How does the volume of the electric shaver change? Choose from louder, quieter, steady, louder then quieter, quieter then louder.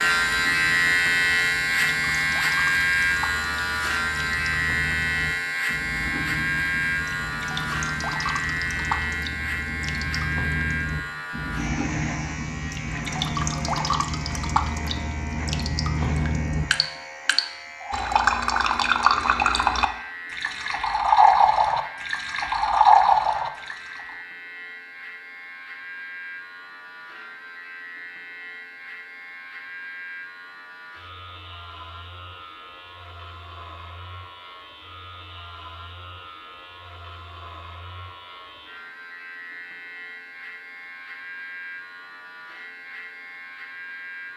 quieter.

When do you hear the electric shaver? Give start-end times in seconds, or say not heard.
0.0-44.3.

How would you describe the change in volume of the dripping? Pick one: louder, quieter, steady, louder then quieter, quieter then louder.
louder.